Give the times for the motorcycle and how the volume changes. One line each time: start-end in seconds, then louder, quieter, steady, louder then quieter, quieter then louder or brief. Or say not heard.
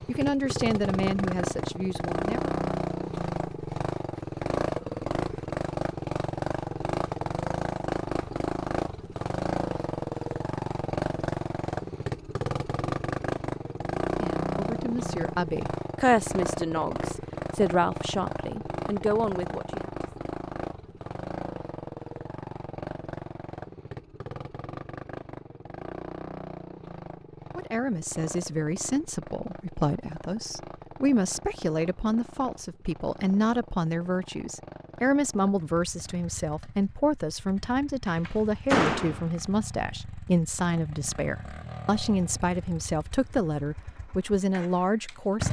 0.0-45.4 quieter.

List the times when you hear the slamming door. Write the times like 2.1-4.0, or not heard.
38.0-39.2.